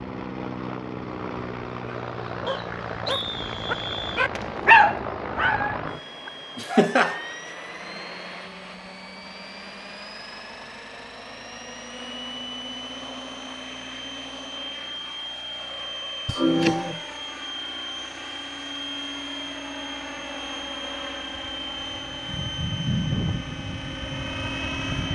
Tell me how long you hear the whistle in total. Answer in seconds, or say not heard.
2 s.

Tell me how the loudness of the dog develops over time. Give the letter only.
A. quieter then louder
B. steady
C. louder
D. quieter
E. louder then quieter
E.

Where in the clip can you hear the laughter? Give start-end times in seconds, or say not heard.
6.5-7.2, 16.2-17.0.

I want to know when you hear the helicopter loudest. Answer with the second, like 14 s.
23 s.